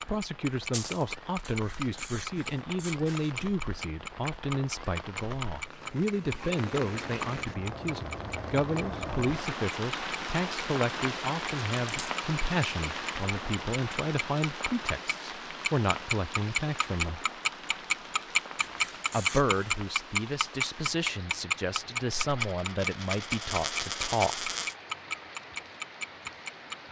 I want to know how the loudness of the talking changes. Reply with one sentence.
The volume of the talking stays about the same.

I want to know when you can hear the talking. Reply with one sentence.
The talking can be heard from 0.0 to 17.2 s and from 19.1 to 24.5 s.